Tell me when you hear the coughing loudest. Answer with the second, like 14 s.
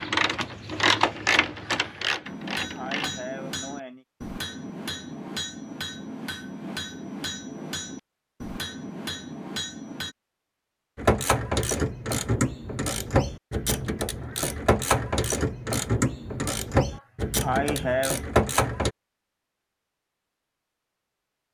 18 s.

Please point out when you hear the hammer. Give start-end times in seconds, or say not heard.
2.2-10.2.